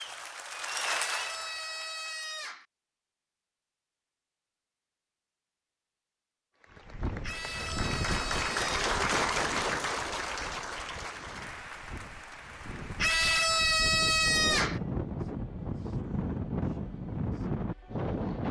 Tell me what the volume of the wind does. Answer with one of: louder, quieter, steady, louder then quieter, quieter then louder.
quieter then louder.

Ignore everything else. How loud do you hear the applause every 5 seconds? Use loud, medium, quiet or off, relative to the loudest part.
medium, loud, medium, off.